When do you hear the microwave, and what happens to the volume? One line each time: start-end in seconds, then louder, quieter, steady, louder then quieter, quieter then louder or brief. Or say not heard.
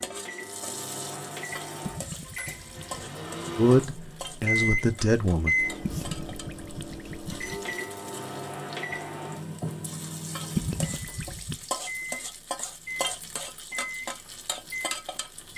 0.0-15.5 louder then quieter.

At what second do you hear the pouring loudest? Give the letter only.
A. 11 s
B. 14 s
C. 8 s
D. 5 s
A.